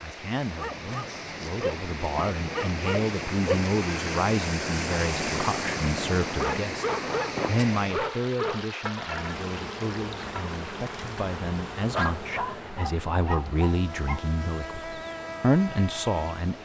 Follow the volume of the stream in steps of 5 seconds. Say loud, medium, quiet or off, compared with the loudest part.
loud, loud, medium, quiet.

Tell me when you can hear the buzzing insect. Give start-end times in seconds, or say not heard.
9.1-16.6.